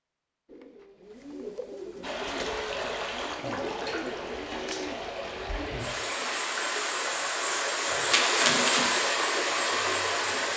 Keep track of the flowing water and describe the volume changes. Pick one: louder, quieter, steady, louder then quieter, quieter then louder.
louder.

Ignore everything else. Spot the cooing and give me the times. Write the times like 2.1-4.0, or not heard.
0.5-5.7.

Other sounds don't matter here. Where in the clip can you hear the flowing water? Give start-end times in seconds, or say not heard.
2.0-10.5.